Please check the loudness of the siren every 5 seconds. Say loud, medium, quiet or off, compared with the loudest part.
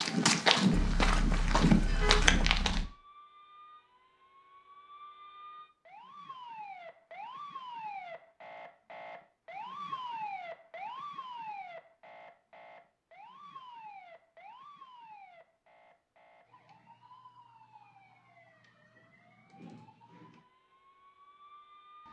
quiet, loud, loud, quiet, quiet.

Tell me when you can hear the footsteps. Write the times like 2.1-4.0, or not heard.
0.0-2.9.